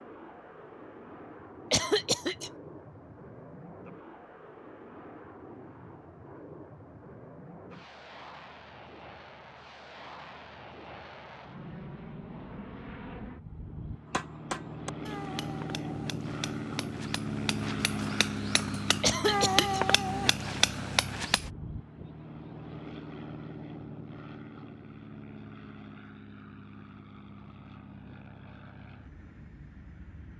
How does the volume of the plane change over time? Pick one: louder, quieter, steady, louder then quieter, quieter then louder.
louder then quieter.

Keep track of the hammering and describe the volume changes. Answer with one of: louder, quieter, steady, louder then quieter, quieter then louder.
quieter then louder.